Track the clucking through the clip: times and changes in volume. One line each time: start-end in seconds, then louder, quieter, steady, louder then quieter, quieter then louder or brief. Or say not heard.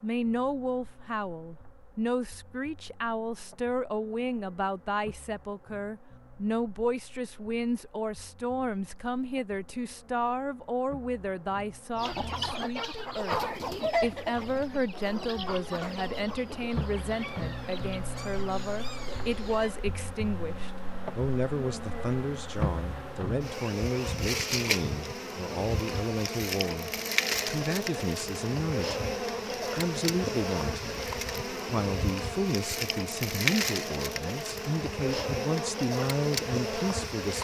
11.9-19.8 quieter.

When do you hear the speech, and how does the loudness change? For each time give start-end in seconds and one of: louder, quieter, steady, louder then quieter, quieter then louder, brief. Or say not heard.
0.0-13.4 steady
14.0-37.4 steady.